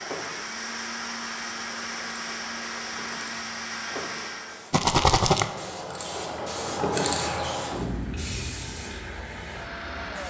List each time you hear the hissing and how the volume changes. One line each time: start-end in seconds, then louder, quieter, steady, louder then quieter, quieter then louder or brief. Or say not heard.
0.0-10.2 louder then quieter.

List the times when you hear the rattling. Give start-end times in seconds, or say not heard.
4.7-5.5.